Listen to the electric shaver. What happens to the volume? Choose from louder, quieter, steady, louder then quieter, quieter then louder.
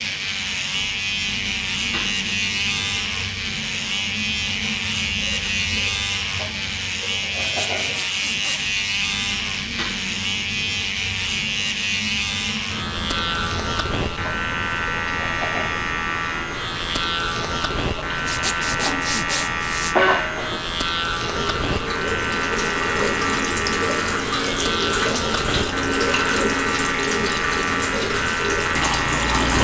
steady.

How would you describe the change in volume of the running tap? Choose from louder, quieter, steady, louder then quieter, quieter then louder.
louder.